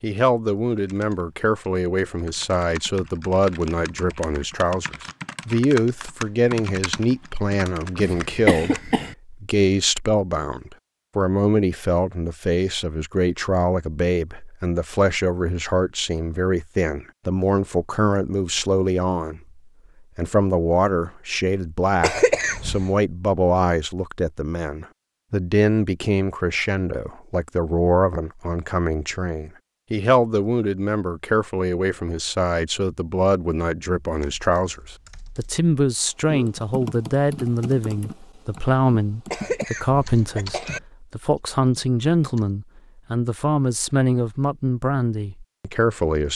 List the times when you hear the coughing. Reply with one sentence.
The coughing can be heard from 8.0 to 9.2 s, from 22.0 to 22.9 s and from 39.3 to 40.8 s.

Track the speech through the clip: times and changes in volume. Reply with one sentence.
You can hear the speech from 0.0 to 46.3 s, at a steady volume.